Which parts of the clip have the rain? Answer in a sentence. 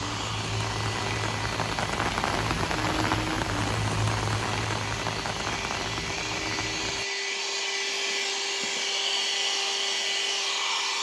The rain can be heard from 0.0 to 7.0 s.